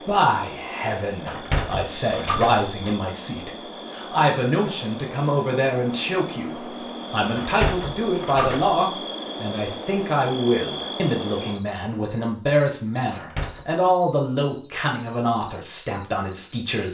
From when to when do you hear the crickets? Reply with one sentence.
The crickets can be heard from 0.0 to 16.8 s.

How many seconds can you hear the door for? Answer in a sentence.
You can hear the door for 4 seconds altogether.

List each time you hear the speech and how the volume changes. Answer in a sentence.
The speech can be heard from 0.0 to 16.8 s, at a steady volume.